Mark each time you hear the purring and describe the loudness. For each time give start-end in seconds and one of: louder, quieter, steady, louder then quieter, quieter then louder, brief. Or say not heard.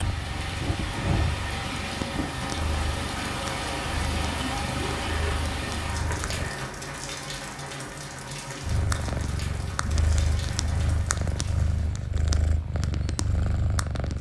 0.0-6.5 quieter
8.6-14.1 steady.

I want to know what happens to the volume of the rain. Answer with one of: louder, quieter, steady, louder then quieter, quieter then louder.
quieter.